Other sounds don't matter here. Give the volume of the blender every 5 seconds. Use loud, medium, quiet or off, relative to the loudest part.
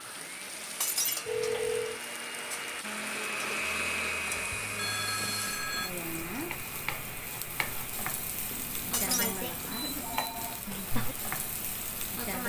loud, medium, quiet.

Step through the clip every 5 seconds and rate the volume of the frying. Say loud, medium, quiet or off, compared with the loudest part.
medium, loud, loud.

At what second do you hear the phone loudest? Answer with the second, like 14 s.
2 s.